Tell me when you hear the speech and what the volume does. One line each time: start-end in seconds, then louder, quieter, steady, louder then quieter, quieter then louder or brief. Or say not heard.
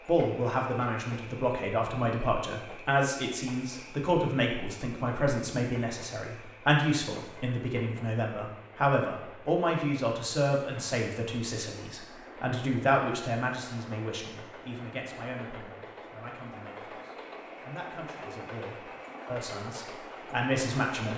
0.1-21.1 quieter.